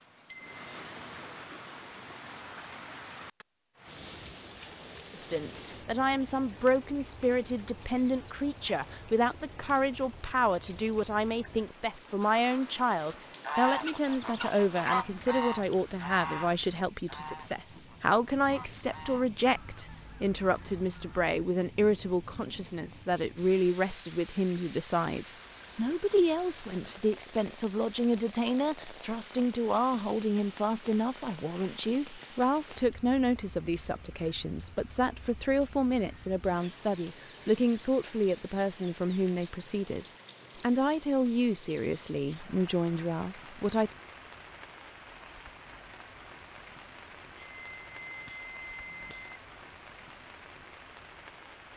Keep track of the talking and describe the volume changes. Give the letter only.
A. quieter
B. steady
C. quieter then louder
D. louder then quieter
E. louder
B.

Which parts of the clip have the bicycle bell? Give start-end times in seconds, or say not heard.
0.2-0.8, 47.4-49.4.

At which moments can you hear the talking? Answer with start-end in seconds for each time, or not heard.
5.2-44.0.